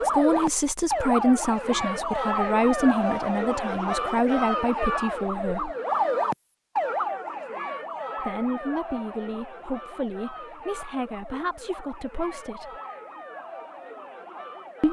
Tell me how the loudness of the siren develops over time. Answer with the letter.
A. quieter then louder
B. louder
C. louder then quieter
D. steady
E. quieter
E.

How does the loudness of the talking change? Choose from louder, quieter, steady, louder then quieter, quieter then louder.
quieter.